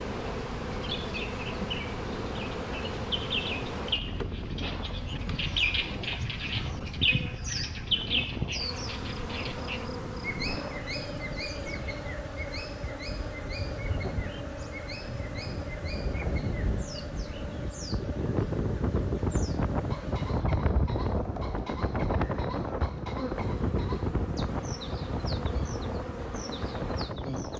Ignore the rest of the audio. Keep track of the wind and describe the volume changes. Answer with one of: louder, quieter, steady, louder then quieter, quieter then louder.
louder.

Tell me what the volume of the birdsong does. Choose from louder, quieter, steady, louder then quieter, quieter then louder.
quieter.